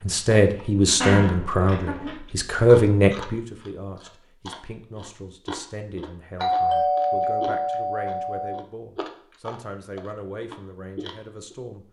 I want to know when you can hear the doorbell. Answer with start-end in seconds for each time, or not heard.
1.0-2.1, 6.3-8.6.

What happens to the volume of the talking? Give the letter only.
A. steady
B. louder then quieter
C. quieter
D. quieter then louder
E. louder
C.